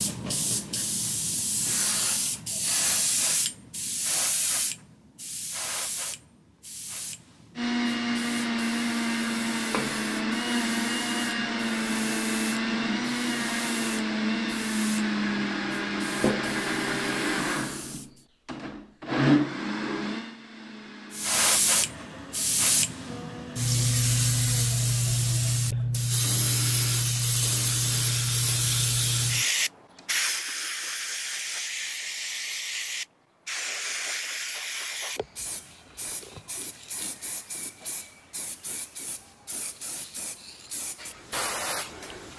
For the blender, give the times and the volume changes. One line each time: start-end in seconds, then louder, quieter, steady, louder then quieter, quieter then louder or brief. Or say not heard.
7.5-30.5 quieter.